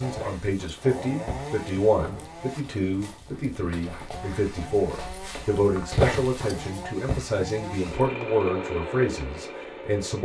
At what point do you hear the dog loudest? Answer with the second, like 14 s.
6 s.